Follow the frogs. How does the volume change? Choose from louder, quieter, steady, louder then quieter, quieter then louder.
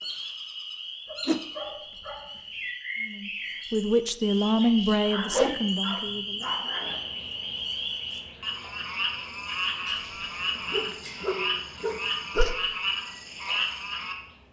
louder.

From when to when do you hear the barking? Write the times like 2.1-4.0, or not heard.
1.1-2.7, 5.0-7.0, 9.8-12.4.